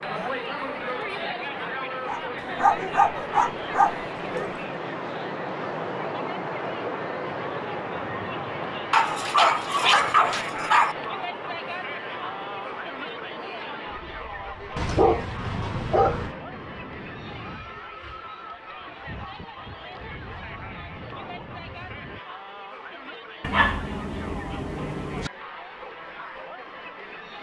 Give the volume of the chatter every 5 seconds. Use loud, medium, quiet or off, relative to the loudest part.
loud, loud, loud, medium, medium, medium.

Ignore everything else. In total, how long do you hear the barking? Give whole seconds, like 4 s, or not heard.
8 s.